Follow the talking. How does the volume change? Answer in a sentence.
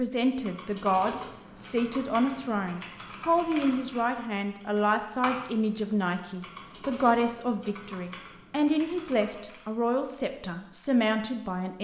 The volume of the talking stays about the same.